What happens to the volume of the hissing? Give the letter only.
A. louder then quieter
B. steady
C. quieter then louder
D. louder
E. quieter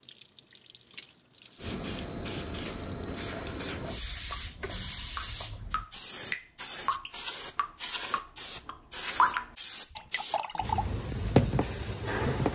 B.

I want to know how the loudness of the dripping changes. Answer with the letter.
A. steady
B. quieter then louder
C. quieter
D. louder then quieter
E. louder
E.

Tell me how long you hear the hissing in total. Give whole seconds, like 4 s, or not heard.
11 s.